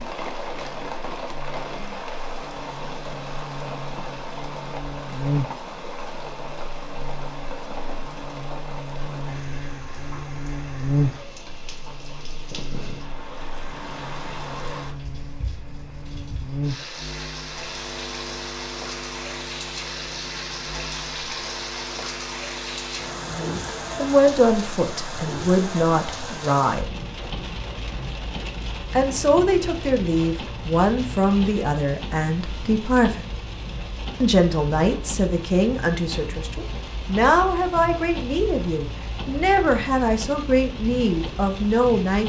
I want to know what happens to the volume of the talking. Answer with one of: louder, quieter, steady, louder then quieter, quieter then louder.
steady.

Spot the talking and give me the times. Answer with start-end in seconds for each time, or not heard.
23.2-26.9, 28.9-33.2, 34.2-42.2.